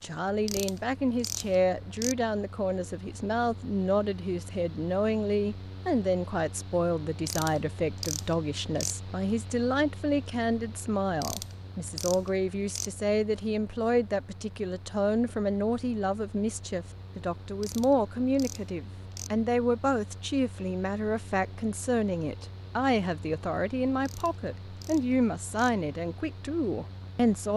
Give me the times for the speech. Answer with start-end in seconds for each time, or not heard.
0.0-27.5.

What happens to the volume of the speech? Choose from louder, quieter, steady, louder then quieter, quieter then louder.
steady.